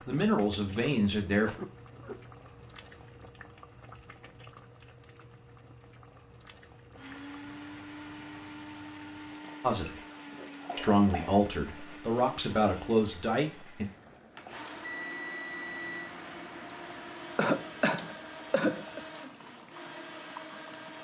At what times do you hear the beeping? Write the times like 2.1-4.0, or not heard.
14.8-16.1.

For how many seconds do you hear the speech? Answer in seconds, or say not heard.
5 s.